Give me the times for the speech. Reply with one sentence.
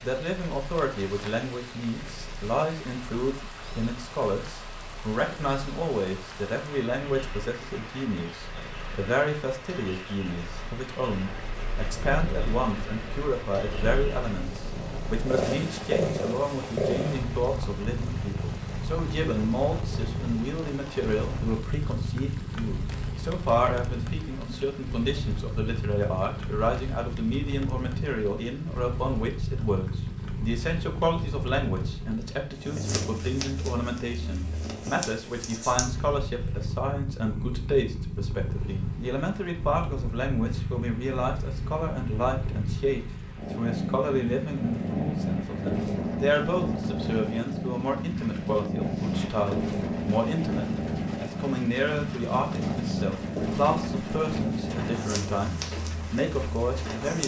The speech can be heard from 0.0 to 57.2 s.